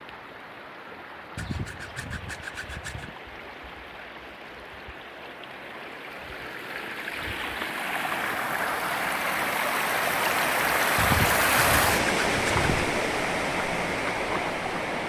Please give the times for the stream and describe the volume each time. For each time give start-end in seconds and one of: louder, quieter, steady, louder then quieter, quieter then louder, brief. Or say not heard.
0.0-15.0 louder.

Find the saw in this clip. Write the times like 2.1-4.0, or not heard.
1.4-3.1, 10.9-12.8.